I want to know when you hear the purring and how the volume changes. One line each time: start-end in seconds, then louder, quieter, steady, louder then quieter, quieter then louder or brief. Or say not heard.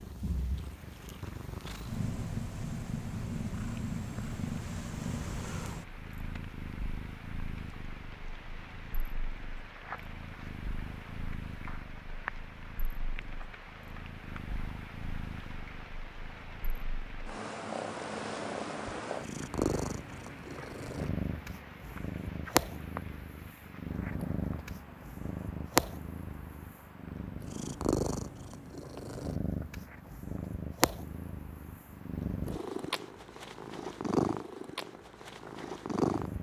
0.0-36.3 quieter then louder.